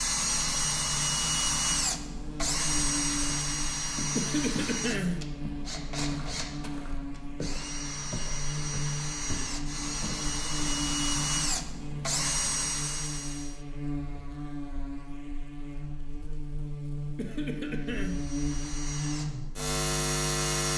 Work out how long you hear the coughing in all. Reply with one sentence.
You can hear the coughing for 2 seconds altogether.